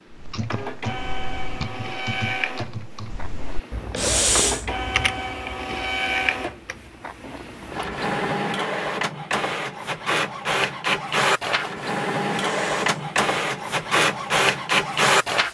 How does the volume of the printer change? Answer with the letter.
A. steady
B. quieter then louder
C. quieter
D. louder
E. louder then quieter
D.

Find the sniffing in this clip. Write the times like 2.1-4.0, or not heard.
4.0-4.7, 12.3-12.8.